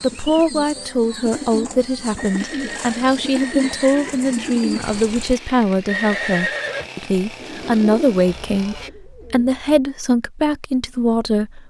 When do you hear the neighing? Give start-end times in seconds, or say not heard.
2.1-4.2, 5.8-6.9.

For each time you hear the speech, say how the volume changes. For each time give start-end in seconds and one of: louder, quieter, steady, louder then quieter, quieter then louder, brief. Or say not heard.
0.0-11.6 steady.